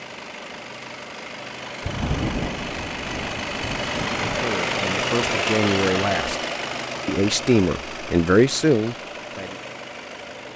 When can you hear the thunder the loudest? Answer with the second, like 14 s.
2 s.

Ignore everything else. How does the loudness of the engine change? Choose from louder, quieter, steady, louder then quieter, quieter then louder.
louder then quieter.